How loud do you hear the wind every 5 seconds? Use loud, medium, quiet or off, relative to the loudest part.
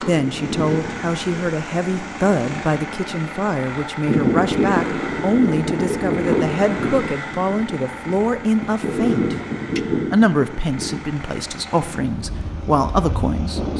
loud, loud, medium.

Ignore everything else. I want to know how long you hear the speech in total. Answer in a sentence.
The speech can be heard for 14 seconds in total.